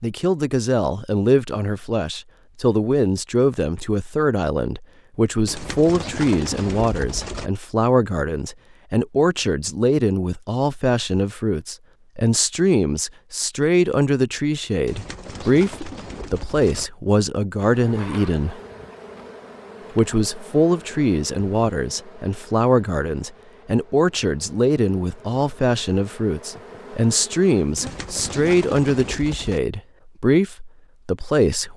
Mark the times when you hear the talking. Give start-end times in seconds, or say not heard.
0.0-18.6, 19.9-31.7.